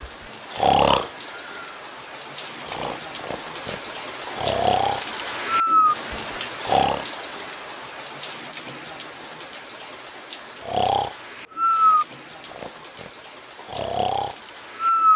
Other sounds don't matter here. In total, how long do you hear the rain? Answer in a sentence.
The rain can be heard for 15 seconds in total.